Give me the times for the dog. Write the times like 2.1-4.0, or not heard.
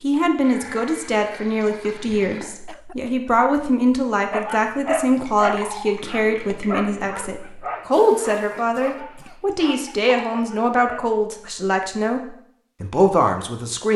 4.3-11.2.